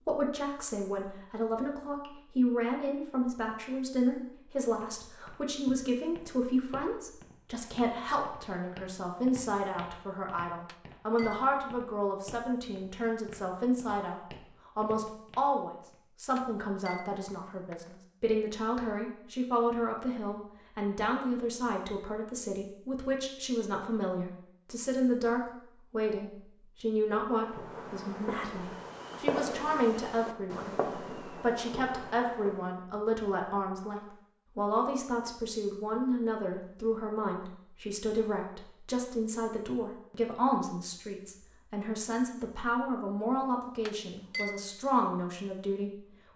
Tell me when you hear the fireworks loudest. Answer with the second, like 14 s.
29 s.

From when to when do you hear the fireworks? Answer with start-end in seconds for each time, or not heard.
27.2-32.8.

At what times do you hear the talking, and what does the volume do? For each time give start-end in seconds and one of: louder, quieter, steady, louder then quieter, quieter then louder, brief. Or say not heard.
0.0-46.0 steady.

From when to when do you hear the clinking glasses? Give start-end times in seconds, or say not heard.
10.7-11.4, 16.4-17.9, 43.9-44.6.